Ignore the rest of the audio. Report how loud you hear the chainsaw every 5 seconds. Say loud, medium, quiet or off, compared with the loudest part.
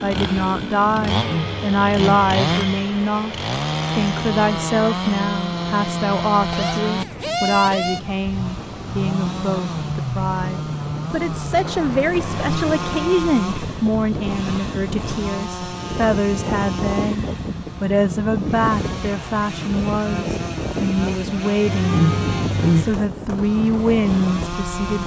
loud, loud, loud, medium, medium.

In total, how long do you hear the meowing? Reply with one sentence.
The meowing can be heard for 4 seconds in total.